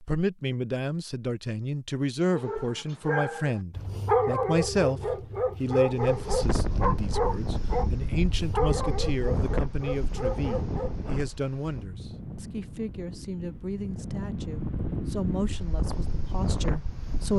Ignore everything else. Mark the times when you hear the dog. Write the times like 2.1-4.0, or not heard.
2.3-11.1.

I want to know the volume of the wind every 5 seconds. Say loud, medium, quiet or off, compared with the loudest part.
off, loud, loud, loud.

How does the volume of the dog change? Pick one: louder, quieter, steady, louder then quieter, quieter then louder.
quieter.